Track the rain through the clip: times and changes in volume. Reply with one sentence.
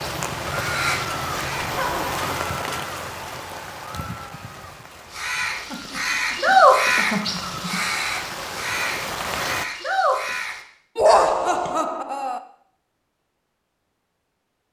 The rain can be heard from 0.0 to 9.7 s, getting quieter then louder.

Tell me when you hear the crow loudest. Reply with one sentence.
The volume of the crow peaks at 7 seconds.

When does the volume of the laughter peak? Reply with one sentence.
The loudest moment of the laughter is at 11 seconds.